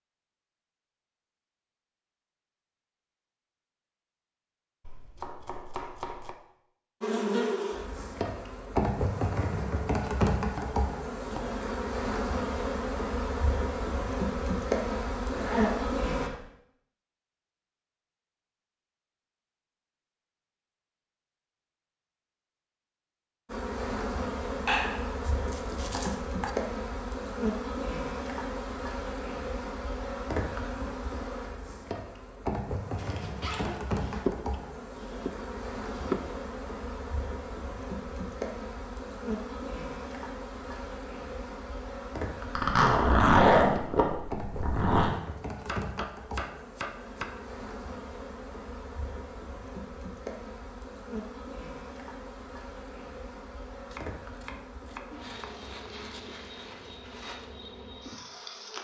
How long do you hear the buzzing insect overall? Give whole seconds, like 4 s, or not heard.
45 s.